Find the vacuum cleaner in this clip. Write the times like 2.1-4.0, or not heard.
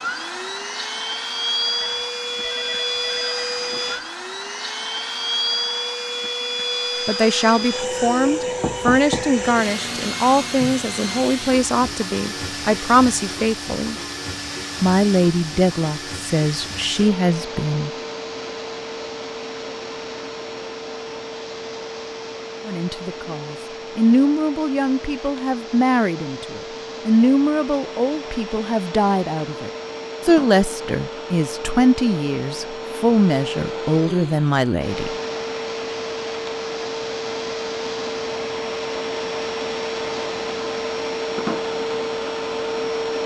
0.0-43.2.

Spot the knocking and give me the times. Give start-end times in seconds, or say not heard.
8.6-9.3.